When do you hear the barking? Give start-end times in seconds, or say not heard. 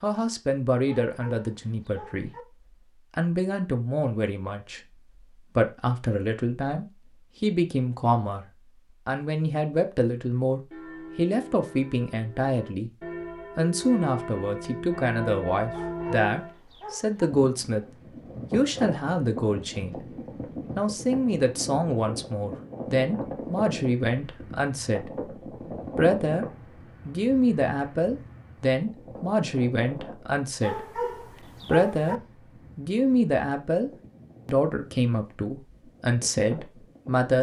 0.8-2.5, 15.7-17.3, 30.6-32.2.